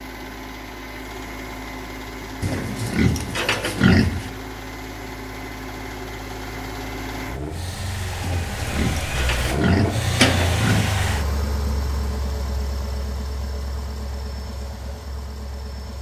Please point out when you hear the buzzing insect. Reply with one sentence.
You can't hear the buzzing insect here.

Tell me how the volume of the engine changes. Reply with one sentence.
The loudness of the engine goes up, then down.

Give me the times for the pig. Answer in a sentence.
You can hear the pig from 2.4 to 4.3 s and from 8.2 to 10.9 s.